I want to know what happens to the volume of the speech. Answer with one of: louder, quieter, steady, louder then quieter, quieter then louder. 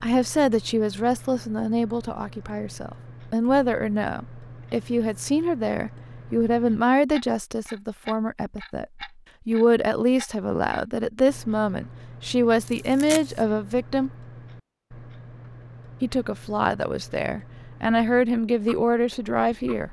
steady.